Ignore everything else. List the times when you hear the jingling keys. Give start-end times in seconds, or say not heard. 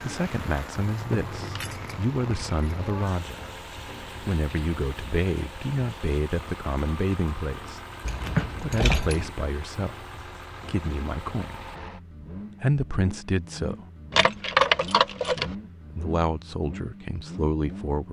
1.1-3.0, 8.1-9.3, 14.1-15.6.